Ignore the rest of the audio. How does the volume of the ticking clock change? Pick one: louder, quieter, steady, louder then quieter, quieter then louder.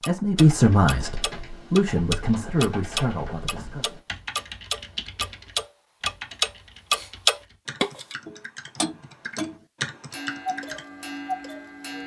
louder then quieter.